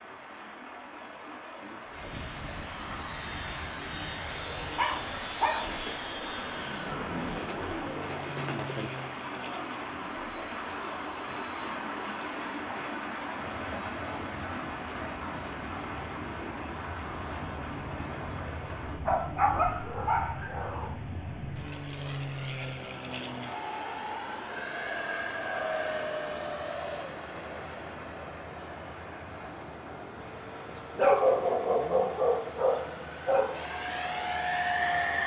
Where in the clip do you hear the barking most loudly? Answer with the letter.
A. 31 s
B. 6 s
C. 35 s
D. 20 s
A.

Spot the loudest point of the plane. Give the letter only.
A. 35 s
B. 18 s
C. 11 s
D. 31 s
A.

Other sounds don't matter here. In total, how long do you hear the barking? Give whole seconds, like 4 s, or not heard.
6 s.